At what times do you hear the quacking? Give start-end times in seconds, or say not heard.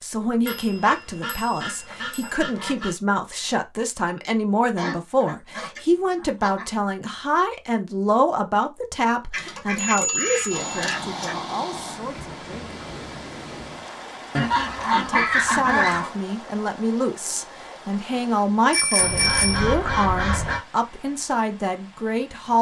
0.5-3.0, 4.8-6.7, 9.3-11.3, 14.3-16.1, 18.9-20.6.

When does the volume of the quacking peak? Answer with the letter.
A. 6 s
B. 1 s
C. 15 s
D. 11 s
C.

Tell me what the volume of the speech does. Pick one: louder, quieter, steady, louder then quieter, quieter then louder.
steady.